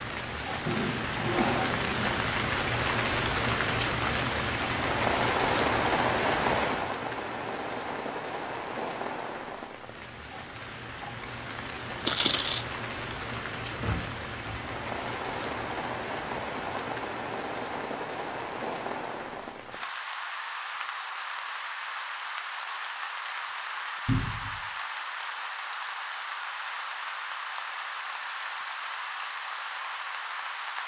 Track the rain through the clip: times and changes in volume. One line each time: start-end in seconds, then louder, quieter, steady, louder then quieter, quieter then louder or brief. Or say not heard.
0.0-30.8 quieter.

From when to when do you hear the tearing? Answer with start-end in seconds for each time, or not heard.
11.0-12.7.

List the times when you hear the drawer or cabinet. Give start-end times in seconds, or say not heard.
0.7-2.1, 13.7-14.7, 24.1-24.6.